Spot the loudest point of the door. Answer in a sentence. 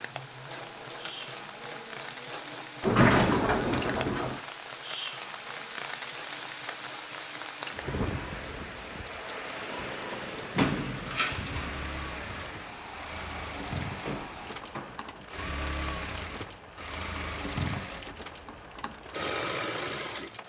The loudest moment of the door is at 3 seconds.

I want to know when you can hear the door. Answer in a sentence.
You can hear the door from 2.8 to 4.4 s, from 10.6 to 11.8 s and from 14.0 to 15.0 s.